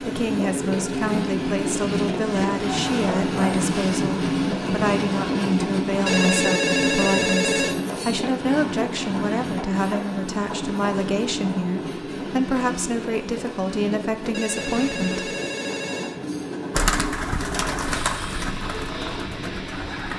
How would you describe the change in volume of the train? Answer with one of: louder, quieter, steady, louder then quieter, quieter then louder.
quieter.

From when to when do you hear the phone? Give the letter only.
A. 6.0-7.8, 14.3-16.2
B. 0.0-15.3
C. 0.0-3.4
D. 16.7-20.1
A.